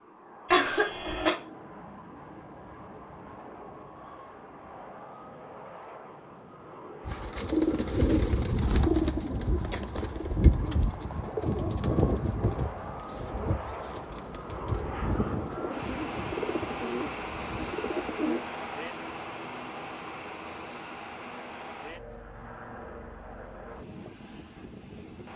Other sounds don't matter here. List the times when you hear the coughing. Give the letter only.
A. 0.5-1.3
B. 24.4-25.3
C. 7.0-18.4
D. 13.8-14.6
A.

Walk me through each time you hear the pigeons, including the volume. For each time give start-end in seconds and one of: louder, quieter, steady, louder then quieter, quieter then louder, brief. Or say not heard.
7.0-18.4 quieter.